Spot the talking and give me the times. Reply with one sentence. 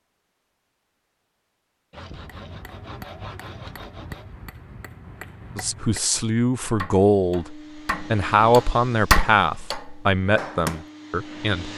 You can hear the talking from 5.5 to 11.7 s.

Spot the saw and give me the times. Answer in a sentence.
The saw can be heard from 1.9 to 4.3 s.